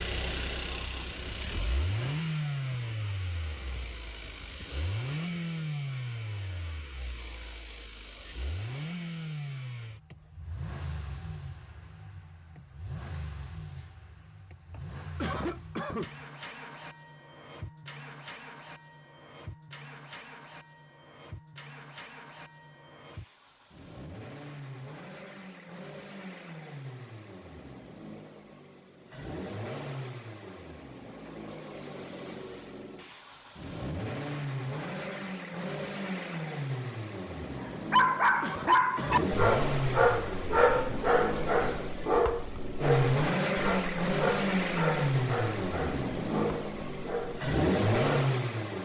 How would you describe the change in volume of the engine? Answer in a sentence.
The loudness of the engine goes down, then up.